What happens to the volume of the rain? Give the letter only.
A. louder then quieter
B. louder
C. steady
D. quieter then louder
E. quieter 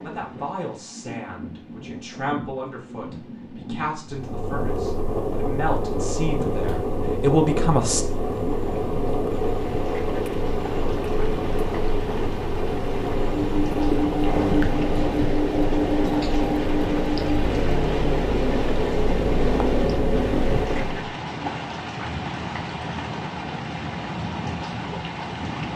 B.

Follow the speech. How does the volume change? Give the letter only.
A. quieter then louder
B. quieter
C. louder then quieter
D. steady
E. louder
E.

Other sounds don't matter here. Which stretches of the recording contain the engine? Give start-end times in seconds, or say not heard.
4.0-21.1.